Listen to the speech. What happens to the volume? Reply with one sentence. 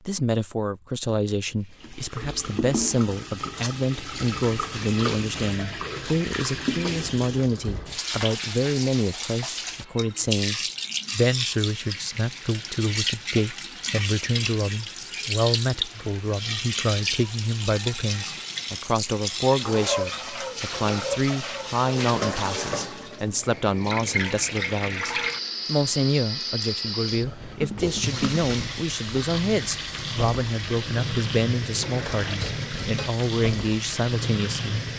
The loudness of the speech stays about the same.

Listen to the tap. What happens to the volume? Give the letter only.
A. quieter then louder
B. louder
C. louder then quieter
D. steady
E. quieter
D.